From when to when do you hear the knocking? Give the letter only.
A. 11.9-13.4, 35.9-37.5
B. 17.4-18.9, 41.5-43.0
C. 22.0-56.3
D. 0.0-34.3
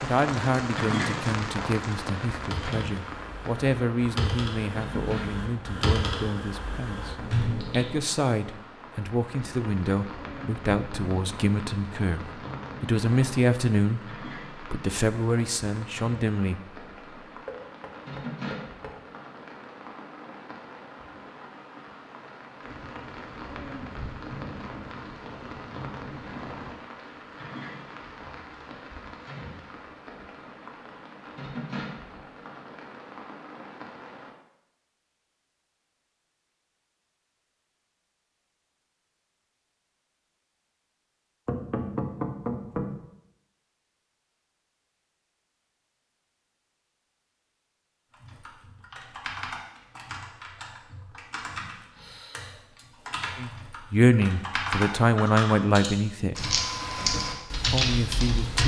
B.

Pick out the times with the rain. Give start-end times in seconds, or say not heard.
0.0-34.3.